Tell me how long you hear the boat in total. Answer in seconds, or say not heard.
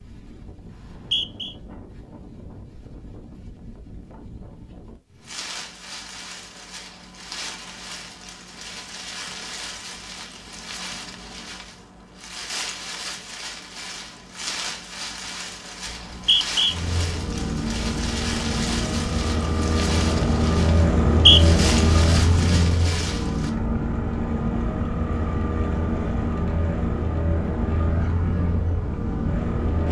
13 s.